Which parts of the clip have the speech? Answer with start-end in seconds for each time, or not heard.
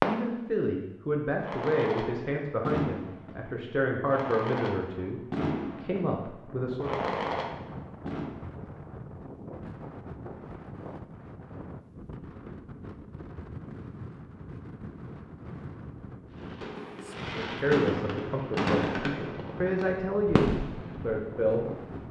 0.0-7.0, 17.4-21.9.